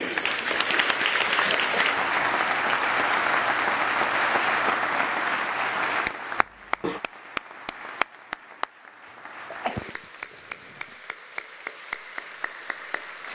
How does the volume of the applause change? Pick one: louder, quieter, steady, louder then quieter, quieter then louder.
quieter.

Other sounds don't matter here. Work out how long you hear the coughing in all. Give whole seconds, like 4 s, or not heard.
3 s.